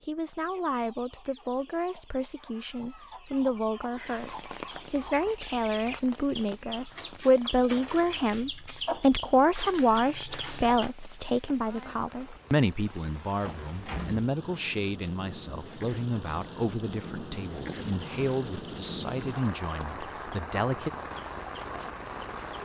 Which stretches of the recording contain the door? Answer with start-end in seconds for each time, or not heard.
13.4-14.3.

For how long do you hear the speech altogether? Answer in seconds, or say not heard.
21 s.